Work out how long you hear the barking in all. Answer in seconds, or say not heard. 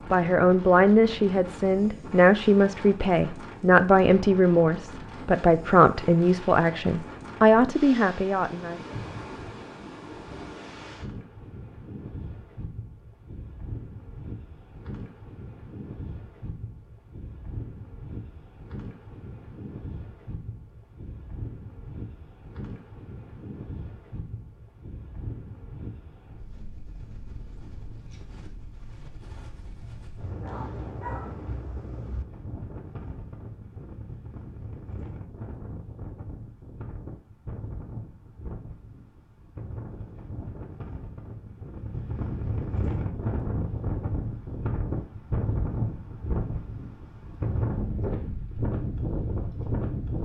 2 s.